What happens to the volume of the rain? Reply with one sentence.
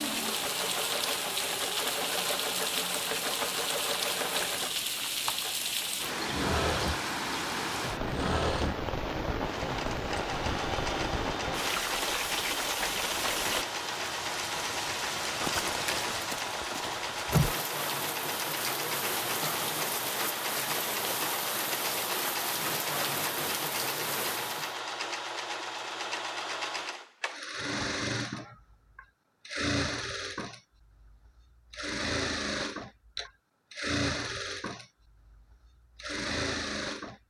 The volume of the rain stays about the same.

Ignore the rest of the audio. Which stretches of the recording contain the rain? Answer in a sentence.
The rain can be heard from 0.0 to 24.8 s.